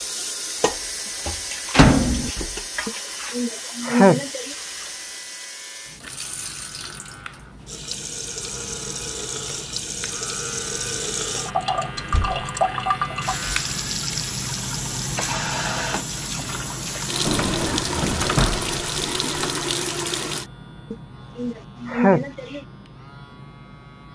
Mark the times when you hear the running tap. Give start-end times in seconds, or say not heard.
0.0-20.4.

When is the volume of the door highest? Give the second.
2 s.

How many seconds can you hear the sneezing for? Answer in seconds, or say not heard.
3 s.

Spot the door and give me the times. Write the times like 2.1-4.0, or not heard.
1.7-2.3, 11.9-12.4, 17.2-19.6.